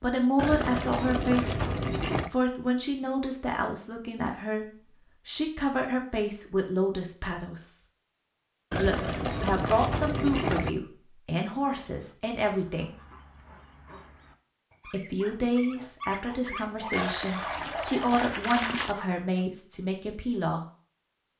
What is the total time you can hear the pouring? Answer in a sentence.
You can hear the pouring for 6 seconds altogether.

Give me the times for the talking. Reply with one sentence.
You can hear the talking from 0.0 to 1.7 s, from 2.3 to 4.7 s, from 5.2 to 7.8 s, from 8.8 to 12.9 s and from 14.9 to 20.6 s.